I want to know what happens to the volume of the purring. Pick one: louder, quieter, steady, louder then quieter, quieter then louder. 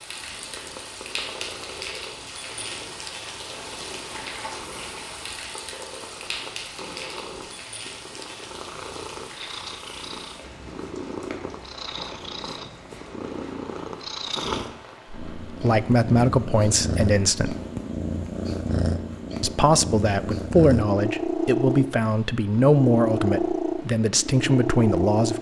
louder.